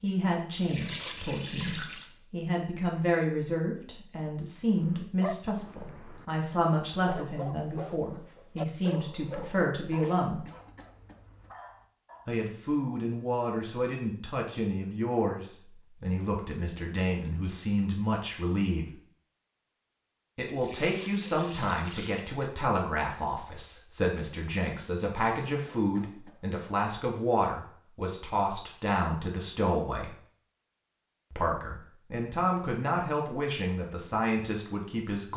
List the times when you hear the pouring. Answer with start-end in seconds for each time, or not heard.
0.5-2.1, 20.4-22.5.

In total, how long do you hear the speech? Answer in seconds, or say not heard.
31 s.